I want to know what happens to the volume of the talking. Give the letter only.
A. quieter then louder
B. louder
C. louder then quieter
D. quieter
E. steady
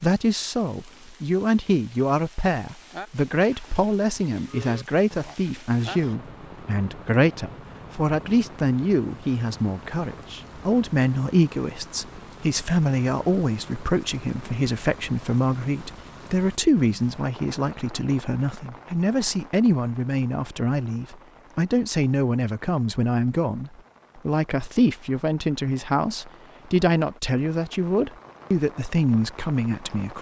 E.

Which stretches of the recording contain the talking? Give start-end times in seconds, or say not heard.
0.0-30.1.